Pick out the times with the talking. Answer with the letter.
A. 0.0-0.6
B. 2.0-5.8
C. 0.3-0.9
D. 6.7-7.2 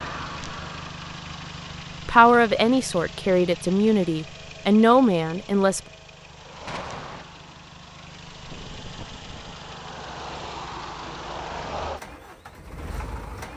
B.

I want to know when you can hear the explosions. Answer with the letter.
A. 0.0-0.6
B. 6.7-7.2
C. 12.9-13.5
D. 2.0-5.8
B.